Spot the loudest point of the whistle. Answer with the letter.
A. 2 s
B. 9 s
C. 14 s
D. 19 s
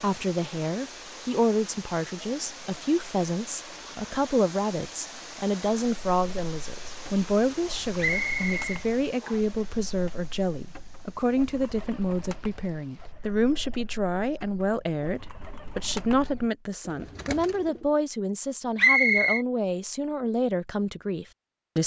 D.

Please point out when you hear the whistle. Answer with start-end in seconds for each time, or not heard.
8.0-9.4, 18.8-19.4.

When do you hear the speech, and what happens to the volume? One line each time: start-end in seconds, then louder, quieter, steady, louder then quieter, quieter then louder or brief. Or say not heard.
0.0-21.8 steady.